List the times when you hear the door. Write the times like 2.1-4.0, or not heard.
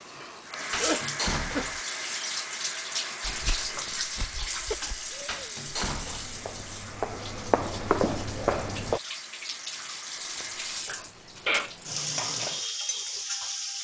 0.7-1.8, 5.2-6.4, 10.2-12.1.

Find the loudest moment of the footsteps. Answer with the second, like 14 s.
8 s.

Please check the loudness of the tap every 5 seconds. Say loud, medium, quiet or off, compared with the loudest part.
loud, medium, loud.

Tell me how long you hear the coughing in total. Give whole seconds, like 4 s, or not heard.
3 s.